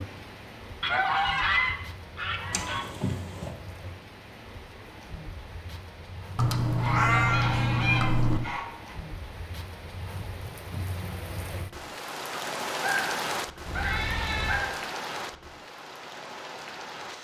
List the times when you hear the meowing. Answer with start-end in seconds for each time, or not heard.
2.5-3.5, 6.3-8.4, 13.7-14.7.